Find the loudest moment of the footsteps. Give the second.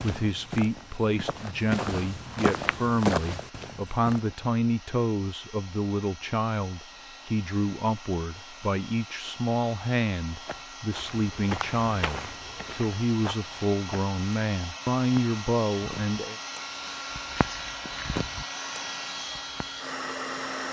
3 s.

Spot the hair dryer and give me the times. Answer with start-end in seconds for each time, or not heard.
0.2-20.6.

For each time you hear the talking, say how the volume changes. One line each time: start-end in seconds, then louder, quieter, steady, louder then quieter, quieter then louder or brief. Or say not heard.
0.0-16.4 steady.